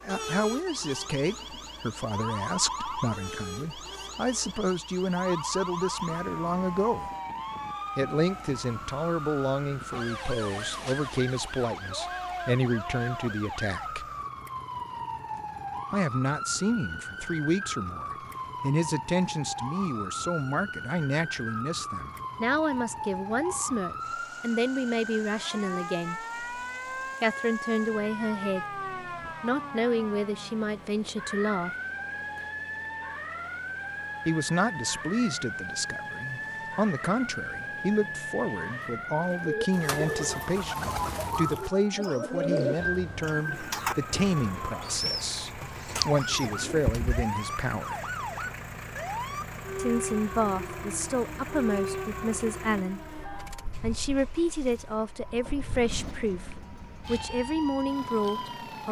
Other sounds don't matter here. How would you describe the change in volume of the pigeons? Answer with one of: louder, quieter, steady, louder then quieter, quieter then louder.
quieter.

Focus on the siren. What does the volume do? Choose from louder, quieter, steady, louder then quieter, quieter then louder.
steady.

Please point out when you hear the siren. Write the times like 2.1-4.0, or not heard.
0.0-58.8.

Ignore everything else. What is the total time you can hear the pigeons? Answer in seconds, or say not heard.
8 s.